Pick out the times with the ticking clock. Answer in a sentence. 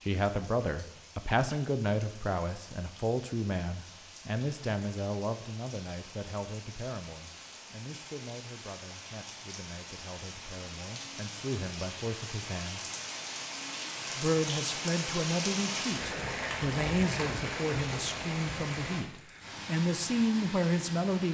You can't hear the ticking clock here.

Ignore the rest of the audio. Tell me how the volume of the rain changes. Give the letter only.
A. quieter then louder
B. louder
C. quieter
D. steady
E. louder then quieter
B.